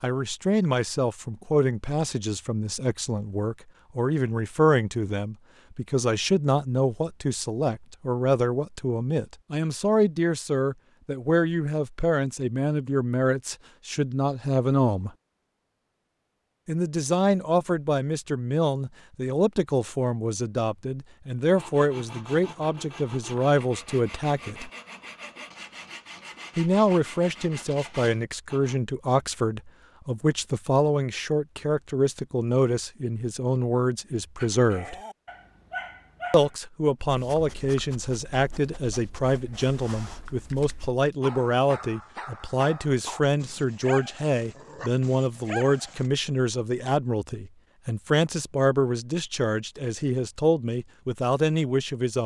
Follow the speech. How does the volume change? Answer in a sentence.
The loudness of the speech stays about the same.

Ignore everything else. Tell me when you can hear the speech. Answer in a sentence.
The speech can be heard from 0.0 to 15.1 s, from 16.6 to 24.7 s, from 26.6 to 35.0 s and from 36.3 to 52.2 s.